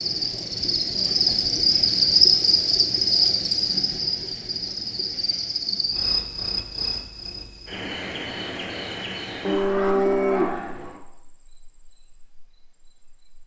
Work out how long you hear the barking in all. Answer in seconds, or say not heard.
not heard.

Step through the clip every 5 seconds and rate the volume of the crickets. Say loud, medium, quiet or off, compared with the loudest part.
loud, medium, quiet.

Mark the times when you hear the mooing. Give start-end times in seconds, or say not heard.
9.4-11.0.